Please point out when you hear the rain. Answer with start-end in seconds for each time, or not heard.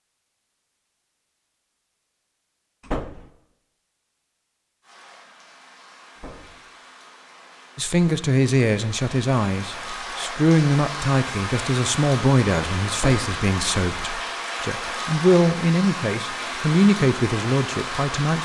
4.8-18.3.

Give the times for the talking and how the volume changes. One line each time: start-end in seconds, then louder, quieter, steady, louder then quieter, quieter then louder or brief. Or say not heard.
7.8-18.3 steady.